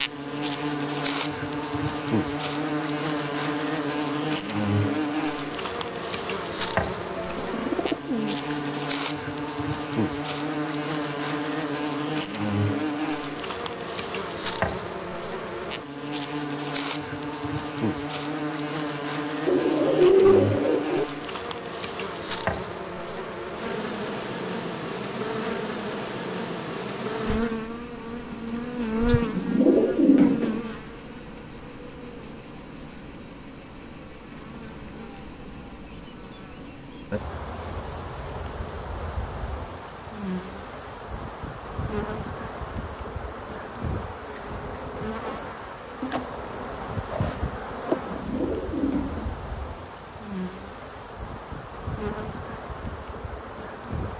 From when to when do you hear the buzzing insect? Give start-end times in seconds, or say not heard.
0.0-54.1.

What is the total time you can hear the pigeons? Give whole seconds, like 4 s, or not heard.
6 s.